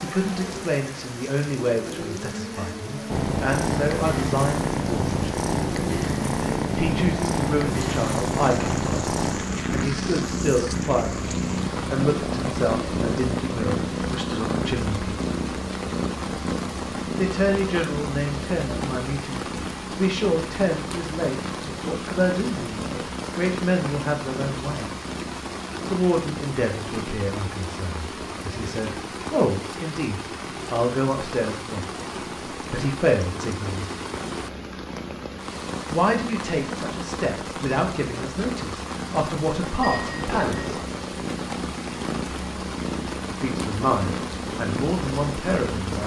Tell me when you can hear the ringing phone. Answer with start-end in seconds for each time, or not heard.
39.8-40.8.